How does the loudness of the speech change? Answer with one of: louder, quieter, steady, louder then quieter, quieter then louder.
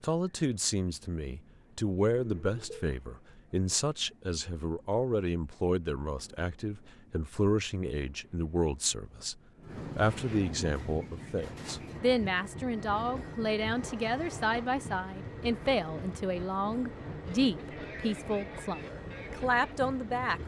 steady.